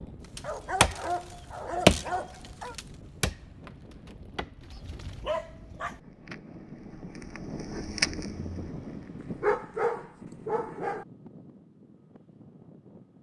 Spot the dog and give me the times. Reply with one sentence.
You can hear the dog from 0.4 to 2.8 s, from 4.6 to 6.0 s and from 9.4 to 11.1 s.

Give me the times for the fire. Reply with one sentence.
You can hear the fire from 0.0 to 9.5 s.